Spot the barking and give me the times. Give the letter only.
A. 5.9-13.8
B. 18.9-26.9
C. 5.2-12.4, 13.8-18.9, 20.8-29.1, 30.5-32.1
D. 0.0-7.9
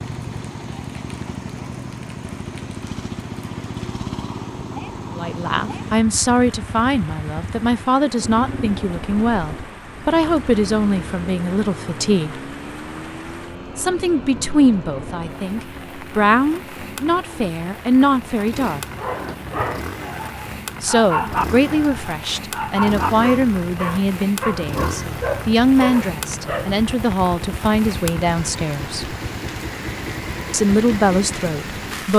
B.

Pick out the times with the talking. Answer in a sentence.
You can hear the talking from 5.2 to 12.4 s, from 13.8 to 18.9 s, from 20.8 to 29.1 s and from 30.5 to 32.1 s.